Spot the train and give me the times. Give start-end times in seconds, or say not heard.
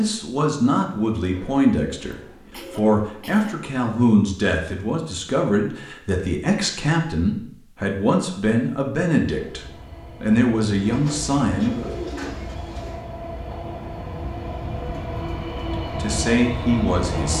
9.2-17.3.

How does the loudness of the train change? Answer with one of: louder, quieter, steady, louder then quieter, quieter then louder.
louder.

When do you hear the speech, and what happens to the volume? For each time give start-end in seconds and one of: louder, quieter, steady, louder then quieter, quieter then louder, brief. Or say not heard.
0.0-9.6 steady
10.2-11.9 brief
15.8-17.3 brief.